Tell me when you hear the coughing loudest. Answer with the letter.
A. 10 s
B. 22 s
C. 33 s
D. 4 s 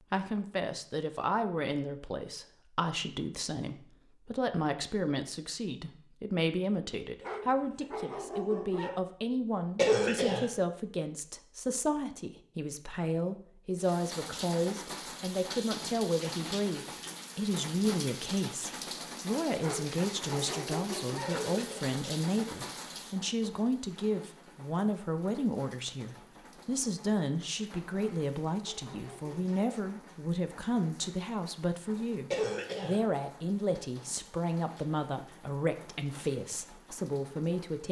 A.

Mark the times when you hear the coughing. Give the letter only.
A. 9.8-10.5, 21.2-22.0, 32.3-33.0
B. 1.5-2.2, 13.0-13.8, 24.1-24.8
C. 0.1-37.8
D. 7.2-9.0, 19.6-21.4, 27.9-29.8
A.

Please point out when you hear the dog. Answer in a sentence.
You can hear the dog from 7.2 to 9.0 s, from 19.6 to 21.4 s and from 27.9 to 29.8 s.